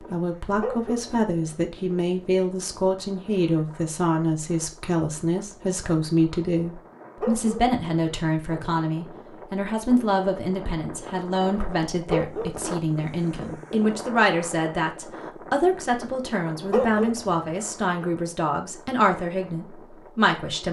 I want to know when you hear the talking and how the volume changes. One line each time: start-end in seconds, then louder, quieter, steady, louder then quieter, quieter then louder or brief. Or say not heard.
0.0-20.6 steady.